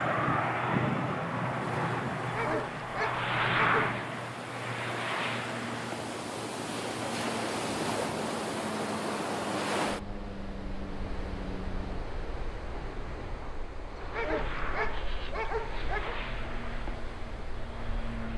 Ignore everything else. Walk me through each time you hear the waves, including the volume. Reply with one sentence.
The waves can be heard from 0.0 to 18.3 s, getting louder then quieter.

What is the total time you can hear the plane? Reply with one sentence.
You can hear the plane for 18 seconds altogether.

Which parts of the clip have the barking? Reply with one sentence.
You can hear the barking from 2.3 to 3.9 s and from 14.1 to 16.1 s.